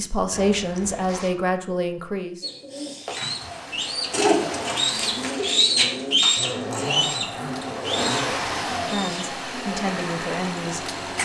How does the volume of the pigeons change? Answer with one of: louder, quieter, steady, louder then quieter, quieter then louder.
louder then quieter.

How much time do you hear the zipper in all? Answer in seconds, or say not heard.
3 s.